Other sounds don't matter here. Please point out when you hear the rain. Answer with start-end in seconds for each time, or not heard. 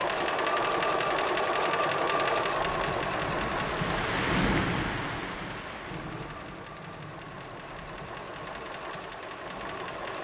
0.0-10.2.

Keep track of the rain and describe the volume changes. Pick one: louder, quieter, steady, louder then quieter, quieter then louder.
louder then quieter.